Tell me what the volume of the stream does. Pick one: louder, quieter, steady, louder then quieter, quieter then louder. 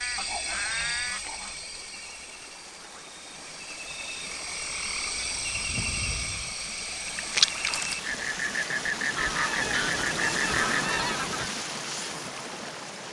louder.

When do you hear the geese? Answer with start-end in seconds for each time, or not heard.
0.1-1.6, 5.0-6.5, 9.2-11.5.